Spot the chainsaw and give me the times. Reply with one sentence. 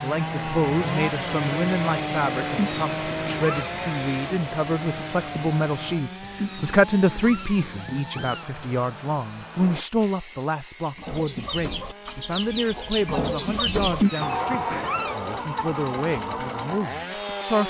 The chainsaw can be heard from 0.0 to 17.6 s.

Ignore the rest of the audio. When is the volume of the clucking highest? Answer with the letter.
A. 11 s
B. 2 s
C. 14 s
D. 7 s
C.